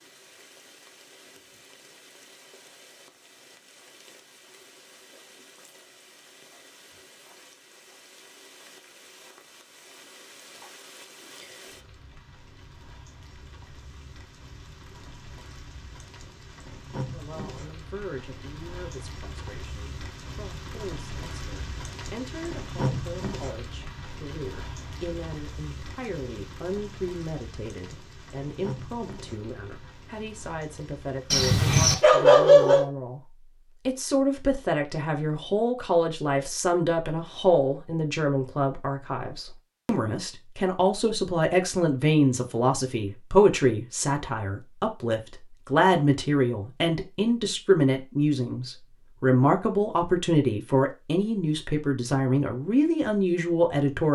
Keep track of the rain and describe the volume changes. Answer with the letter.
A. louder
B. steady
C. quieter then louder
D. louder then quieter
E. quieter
D.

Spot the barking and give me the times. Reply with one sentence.
You can hear the barking from 31.3 to 32.9 s.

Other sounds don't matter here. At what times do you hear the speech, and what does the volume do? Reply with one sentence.
You can hear the speech from 17.1 to 54.0 s, getting louder.